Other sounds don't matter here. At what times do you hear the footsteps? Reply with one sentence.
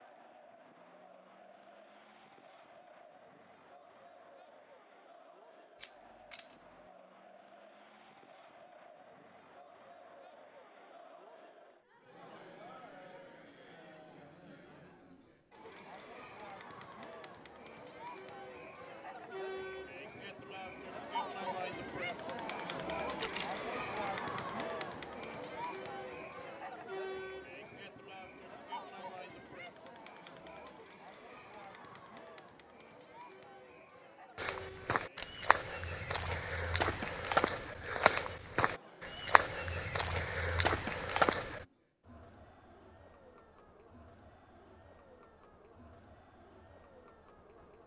You can hear the footsteps from 34.4 to 41.6 s.